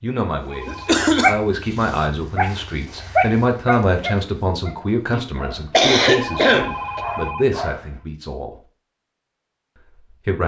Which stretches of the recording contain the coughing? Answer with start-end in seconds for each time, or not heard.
0.7-1.4, 5.7-7.0.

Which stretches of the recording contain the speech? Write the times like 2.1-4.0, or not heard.
0.0-8.7, 9.8-10.4.